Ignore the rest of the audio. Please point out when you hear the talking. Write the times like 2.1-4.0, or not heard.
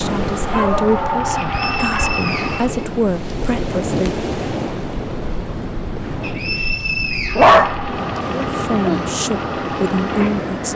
0.0-4.2, 8.3-10.7.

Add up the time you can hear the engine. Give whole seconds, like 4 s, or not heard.
6 s.